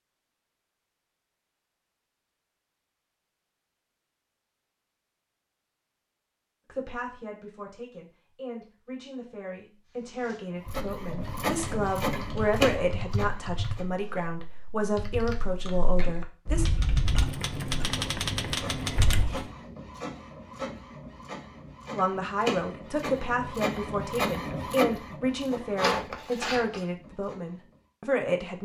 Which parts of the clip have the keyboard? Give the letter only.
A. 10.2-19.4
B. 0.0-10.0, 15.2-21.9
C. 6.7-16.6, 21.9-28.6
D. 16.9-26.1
A.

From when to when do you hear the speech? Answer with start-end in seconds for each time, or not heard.
6.7-16.6, 21.9-28.6.